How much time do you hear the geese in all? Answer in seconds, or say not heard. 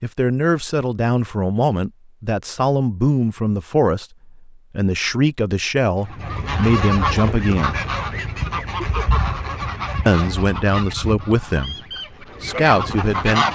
7 s.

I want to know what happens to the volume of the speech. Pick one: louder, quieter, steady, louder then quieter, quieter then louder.
steady.